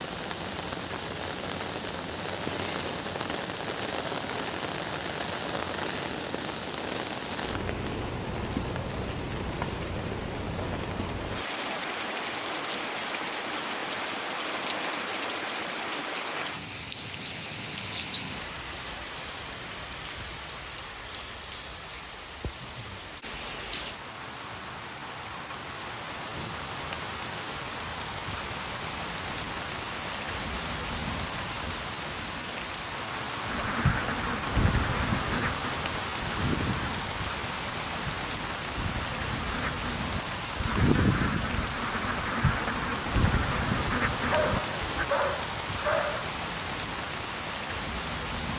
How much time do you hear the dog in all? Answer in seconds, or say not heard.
2 s.